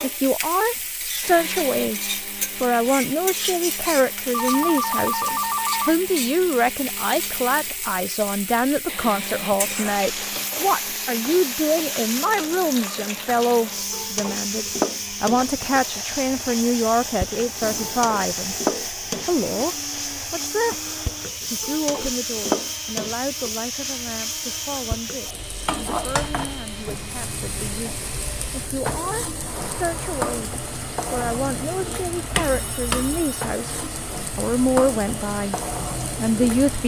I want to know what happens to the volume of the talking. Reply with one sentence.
The volume of the talking goes down, then up.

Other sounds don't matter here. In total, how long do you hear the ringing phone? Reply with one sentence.
The ringing phone can be heard for 4 seconds in total.